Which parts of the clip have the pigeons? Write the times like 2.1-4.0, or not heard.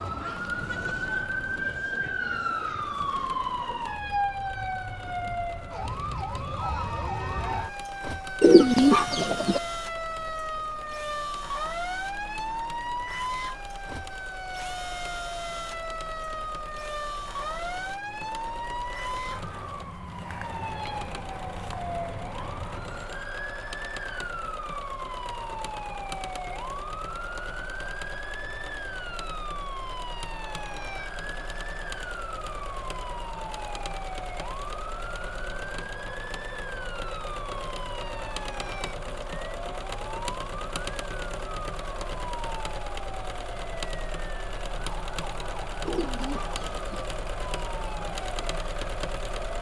8.4-9.6, 45.9-47.0.